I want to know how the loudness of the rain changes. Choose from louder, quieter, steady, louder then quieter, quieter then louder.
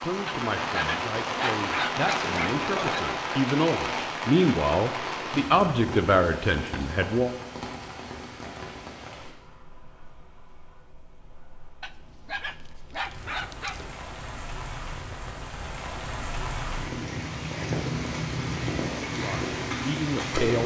quieter then louder.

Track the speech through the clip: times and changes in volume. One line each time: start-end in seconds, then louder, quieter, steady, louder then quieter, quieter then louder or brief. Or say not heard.
0.0-7.3 louder
18.9-20.6 brief.